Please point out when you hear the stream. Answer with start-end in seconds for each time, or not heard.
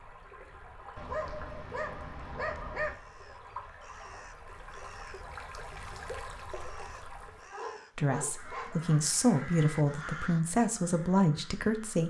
0.0-7.5.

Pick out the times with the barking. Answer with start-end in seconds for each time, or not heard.
0.9-3.0, 7.5-9.1.